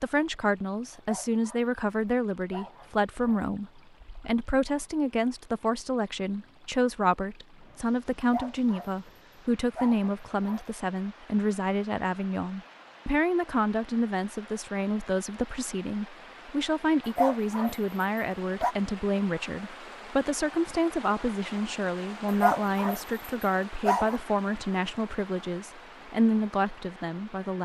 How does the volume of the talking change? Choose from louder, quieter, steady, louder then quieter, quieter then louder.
steady.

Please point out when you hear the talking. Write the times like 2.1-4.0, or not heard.
0.0-27.6.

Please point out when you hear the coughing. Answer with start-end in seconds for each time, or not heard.
not heard.